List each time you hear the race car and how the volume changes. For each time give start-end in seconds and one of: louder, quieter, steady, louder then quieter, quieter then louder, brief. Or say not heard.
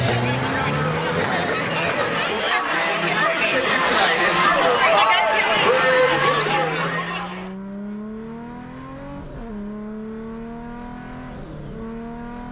0.0-2.5 brief
5.9-12.4 steady.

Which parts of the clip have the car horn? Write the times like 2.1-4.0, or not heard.
not heard.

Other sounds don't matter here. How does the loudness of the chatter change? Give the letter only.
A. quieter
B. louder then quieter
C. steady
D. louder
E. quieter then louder
D.